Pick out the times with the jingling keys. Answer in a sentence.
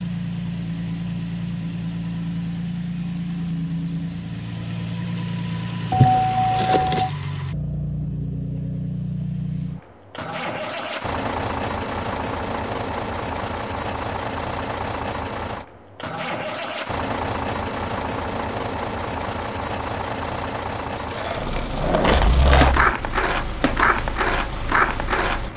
You can hear the jingling keys from 5.9 to 7.1 s and from 22.2 to 22.9 s.